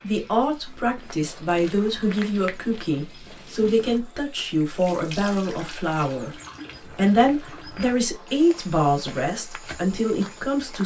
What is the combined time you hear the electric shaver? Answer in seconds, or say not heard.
not heard.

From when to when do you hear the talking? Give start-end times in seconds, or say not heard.
0.0-6.3, 7.0-10.8.